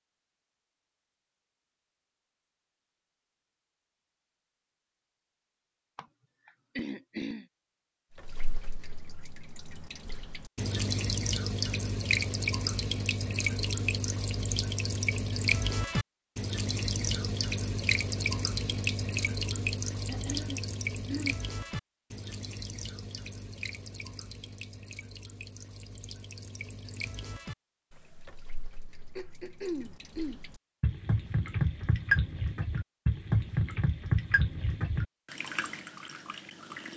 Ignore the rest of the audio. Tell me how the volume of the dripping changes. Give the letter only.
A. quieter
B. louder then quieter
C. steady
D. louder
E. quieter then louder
E.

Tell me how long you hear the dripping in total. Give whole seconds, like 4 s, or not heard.
29 s.